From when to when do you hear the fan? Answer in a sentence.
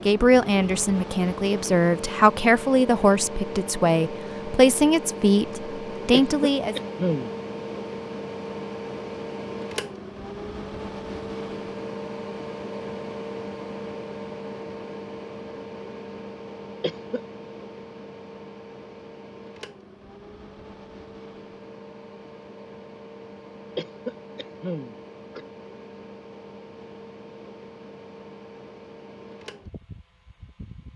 The fan can be heard from 0.0 to 30.9 s.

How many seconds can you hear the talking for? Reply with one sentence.
You can hear the talking for 7 seconds altogether.